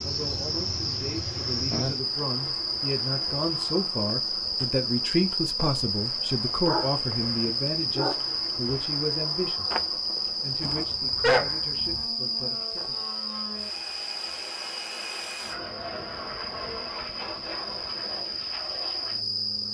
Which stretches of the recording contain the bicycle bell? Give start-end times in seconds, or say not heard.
not heard.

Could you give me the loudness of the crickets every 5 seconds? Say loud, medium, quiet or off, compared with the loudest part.
loud, loud, loud, medium.